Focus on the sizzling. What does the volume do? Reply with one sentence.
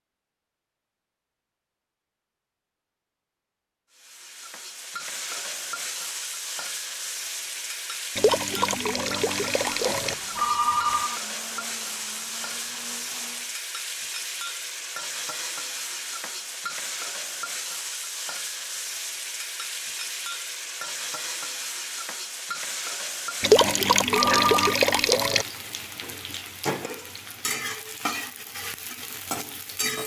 The volume of the sizzling stays about the same.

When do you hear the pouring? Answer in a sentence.
The pouring can be heard from 8.2 to 10.2 s and from 23.4 to 25.4 s.